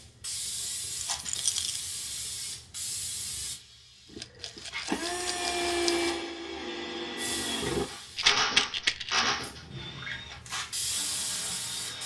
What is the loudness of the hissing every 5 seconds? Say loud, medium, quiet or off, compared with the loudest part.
loud, medium, loud.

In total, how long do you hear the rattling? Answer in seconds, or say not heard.
4 s.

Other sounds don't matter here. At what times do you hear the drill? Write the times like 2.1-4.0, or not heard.
4.1-12.0.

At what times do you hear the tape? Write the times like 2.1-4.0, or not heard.
not heard.